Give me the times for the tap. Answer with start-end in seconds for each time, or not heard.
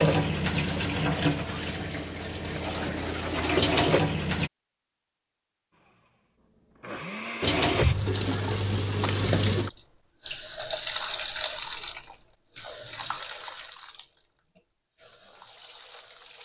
0.0-4.5, 7.4-16.3.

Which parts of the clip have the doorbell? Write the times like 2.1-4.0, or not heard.
9.0-9.6.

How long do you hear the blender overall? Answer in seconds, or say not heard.
2 s.